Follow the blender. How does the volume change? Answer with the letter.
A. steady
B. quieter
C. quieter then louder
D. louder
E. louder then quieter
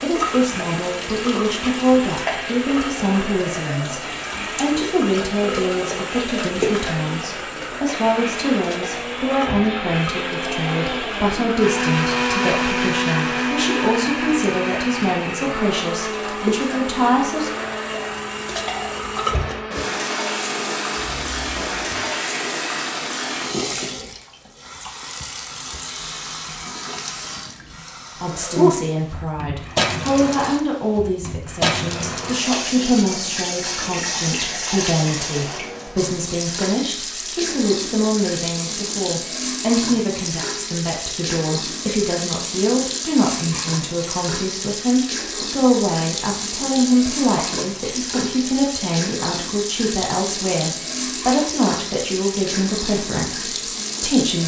E.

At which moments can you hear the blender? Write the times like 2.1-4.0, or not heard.
0.2-22.9.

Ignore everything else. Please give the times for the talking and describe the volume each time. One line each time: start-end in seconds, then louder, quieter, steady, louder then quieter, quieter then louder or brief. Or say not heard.
0.0-17.5 steady
28.2-54.4 steady.